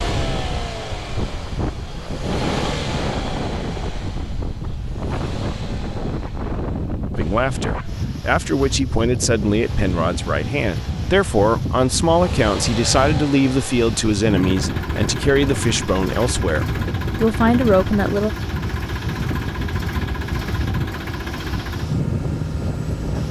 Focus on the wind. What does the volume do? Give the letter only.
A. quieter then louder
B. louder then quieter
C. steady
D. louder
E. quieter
C.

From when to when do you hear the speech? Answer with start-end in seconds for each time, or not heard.
7.2-18.3.